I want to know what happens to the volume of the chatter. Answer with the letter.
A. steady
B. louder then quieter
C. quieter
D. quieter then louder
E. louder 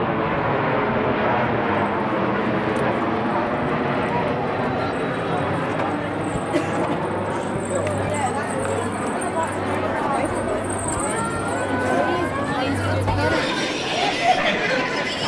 E.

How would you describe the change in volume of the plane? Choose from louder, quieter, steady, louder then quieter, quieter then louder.
quieter.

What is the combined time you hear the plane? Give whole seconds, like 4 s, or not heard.
15 s.